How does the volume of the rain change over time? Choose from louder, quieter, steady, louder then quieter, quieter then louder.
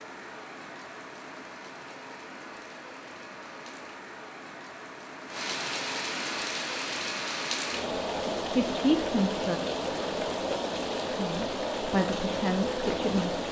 louder.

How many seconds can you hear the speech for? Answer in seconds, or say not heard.
3 s.